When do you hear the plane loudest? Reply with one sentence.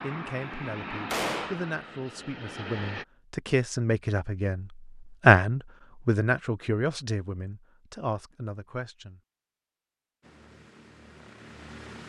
The loudest moment of the plane is at 1 second.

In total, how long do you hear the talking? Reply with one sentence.
The talking can be heard for 9 seconds in total.